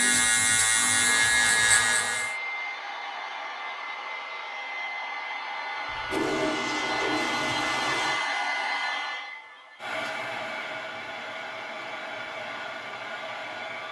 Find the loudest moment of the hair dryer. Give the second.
8 s.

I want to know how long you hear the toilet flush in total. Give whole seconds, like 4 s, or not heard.
2 s.